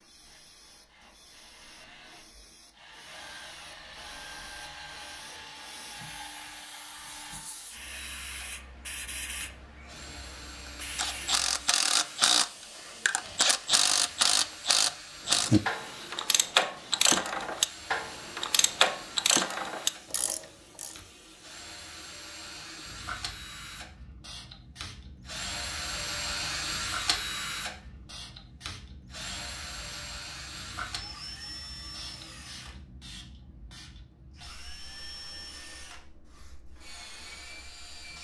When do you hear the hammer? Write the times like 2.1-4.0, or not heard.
not heard.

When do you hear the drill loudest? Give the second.
27 s.